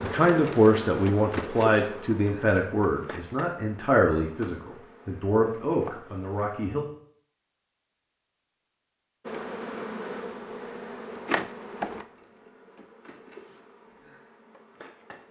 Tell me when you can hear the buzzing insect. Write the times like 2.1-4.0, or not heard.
0.0-6.5, 9.2-15.2.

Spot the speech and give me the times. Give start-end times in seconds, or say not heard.
0.0-6.8.